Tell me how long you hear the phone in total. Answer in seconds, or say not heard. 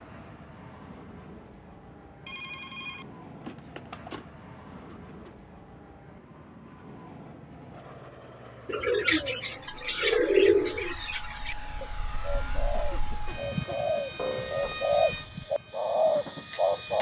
3 s.